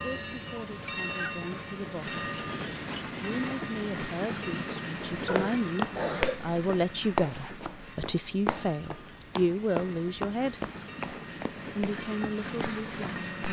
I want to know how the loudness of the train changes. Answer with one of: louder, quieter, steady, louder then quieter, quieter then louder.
quieter then louder.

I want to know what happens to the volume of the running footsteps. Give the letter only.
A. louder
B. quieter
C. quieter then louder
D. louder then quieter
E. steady
B.